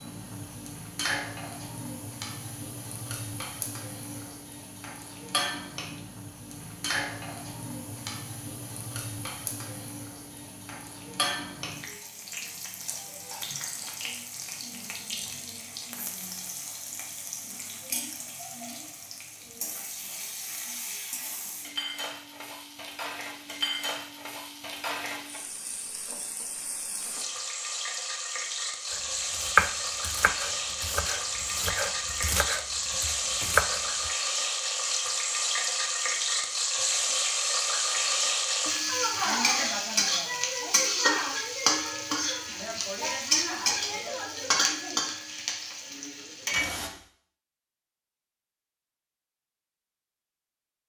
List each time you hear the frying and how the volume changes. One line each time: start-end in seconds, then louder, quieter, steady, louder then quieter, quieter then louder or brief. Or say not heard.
0.0-46.9 louder.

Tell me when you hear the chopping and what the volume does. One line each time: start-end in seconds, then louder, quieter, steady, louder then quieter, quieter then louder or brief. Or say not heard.
28.9-34.1 quieter then louder.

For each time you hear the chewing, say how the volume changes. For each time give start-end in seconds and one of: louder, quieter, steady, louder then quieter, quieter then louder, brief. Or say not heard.
not heard.